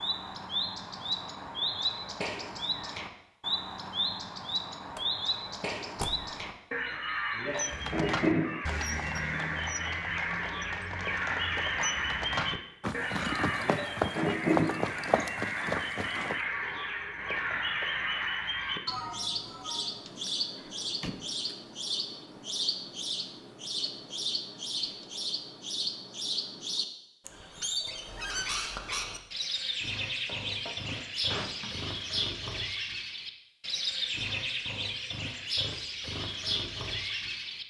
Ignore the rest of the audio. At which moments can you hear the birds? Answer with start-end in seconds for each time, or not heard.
0.0-37.6.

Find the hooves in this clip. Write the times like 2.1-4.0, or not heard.
7.5-16.4.